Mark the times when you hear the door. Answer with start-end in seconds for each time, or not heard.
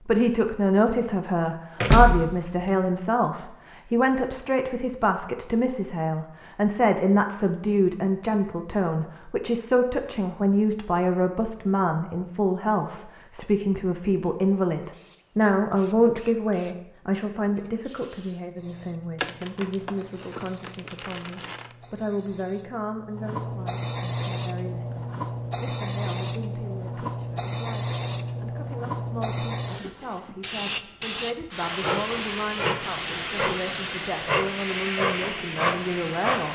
1.8-2.7.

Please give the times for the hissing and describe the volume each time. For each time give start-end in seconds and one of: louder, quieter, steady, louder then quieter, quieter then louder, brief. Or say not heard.
14.9-36.5 louder.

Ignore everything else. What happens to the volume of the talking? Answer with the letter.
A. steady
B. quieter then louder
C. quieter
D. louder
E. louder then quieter
C.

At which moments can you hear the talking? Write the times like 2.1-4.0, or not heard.
0.1-36.5.